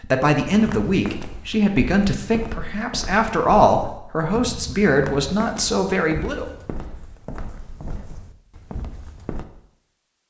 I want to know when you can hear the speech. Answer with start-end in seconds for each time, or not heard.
0.0-6.5.